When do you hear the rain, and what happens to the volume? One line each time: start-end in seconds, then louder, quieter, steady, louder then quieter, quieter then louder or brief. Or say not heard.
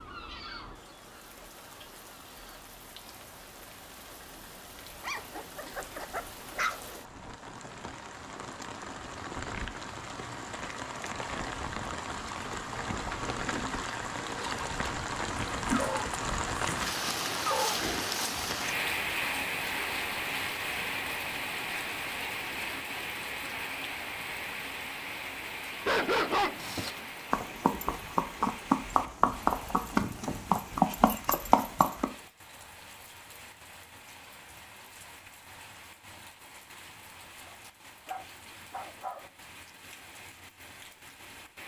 0.0-41.6 louder then quieter.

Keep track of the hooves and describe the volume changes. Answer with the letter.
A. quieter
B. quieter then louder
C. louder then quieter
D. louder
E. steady
D.